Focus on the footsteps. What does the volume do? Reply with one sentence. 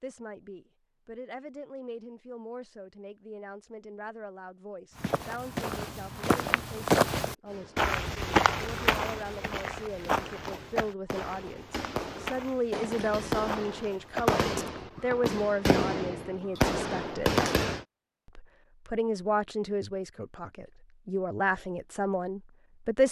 The loudness of the footsteps goes down.